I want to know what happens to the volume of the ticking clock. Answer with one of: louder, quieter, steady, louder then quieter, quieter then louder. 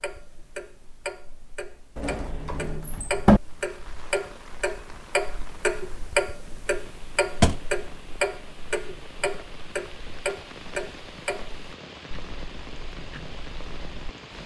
louder then quieter.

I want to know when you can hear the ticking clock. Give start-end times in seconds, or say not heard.
0.0-14.4.